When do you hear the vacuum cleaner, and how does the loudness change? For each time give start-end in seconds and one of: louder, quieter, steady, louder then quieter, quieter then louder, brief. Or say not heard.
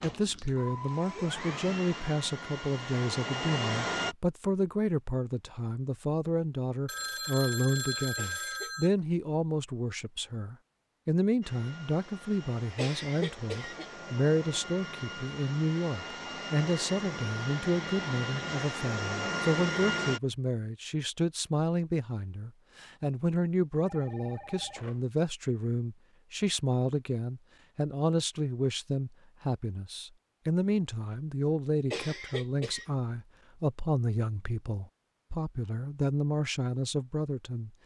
0.0-4.2 louder
11.4-20.2 louder.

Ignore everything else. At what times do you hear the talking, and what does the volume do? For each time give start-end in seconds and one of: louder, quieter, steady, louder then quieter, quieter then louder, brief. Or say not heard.
0.0-37.7 steady.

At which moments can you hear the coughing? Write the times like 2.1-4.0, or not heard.
8.2-8.8, 12.8-13.9, 31.9-33.0.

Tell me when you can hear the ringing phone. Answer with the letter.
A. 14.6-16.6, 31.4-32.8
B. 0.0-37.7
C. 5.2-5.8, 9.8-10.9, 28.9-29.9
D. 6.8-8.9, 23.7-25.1
D.